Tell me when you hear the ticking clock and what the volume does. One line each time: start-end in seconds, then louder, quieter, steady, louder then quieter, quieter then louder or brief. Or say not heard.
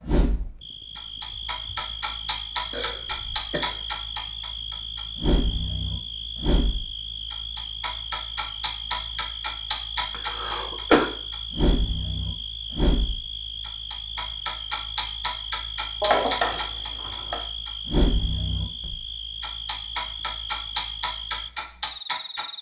0.0-22.5 steady.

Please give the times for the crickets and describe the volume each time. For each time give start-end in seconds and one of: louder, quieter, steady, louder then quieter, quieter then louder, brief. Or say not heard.
0.2-22.5 steady.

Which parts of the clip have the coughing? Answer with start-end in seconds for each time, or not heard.
2.7-3.8, 10.1-11.1, 16.0-17.4.